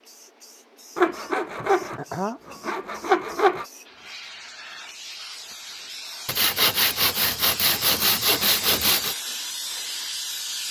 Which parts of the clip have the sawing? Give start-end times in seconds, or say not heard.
0.9-3.6, 6.2-9.2.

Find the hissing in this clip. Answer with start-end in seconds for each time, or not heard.
0.0-10.6.